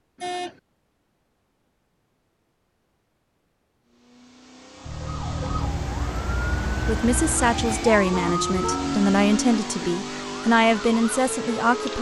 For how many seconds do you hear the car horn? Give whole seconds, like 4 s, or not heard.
3 s.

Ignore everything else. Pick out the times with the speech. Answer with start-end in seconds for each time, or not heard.
6.7-11.9.